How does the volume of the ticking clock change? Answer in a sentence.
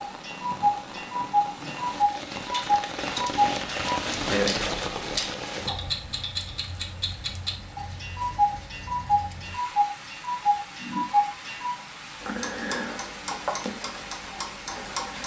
The loudness of the ticking clock goes down.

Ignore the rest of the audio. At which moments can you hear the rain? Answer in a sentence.
The rain can be heard from 0.0 to 15.2 s.